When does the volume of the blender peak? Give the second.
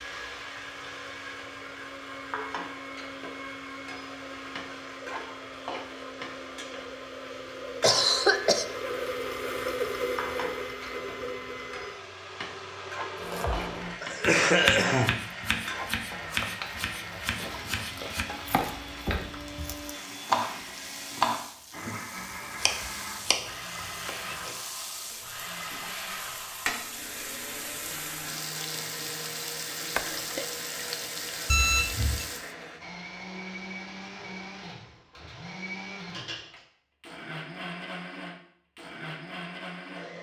10 s.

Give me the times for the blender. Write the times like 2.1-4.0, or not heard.
0.0-40.1.